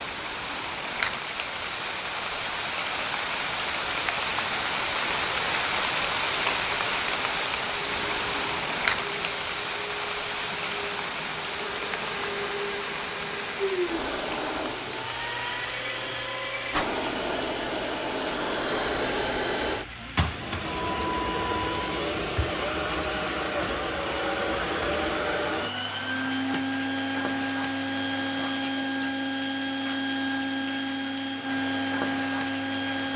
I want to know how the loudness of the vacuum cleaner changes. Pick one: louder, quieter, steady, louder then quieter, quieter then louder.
louder.